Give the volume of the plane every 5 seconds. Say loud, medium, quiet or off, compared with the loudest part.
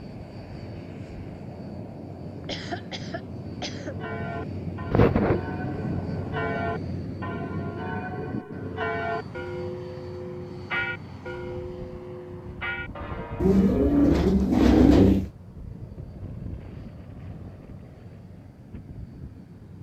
loud, loud, medium, medium.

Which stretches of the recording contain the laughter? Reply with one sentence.
You can hear the laughter from 2.4 to 4.0 s.